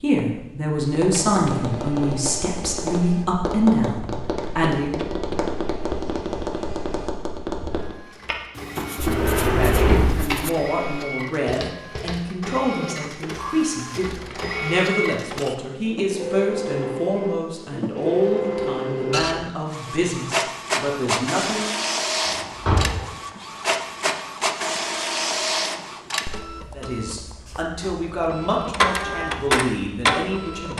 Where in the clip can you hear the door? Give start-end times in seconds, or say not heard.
8.9-10.5, 22.2-23.1.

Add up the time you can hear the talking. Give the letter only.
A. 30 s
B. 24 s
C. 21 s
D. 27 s
C.